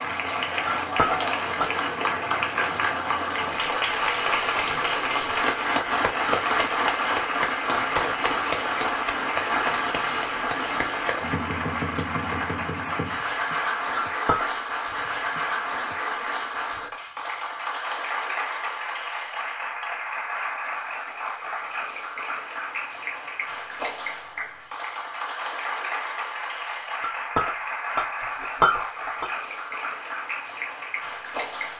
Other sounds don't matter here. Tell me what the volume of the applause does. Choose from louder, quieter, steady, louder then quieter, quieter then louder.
quieter.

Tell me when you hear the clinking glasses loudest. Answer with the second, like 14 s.
29 s.